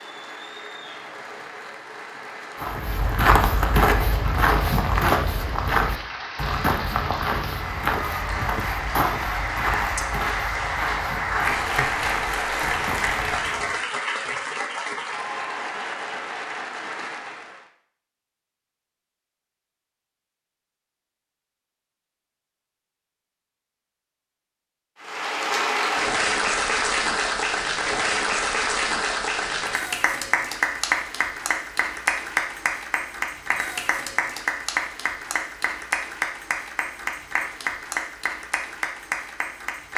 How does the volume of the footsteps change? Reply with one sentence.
The loudness of the footsteps goes down.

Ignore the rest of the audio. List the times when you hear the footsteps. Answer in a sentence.
The footsteps can be heard from 2.6 to 13.8 s.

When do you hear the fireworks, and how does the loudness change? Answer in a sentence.
You can't hear the fireworks here.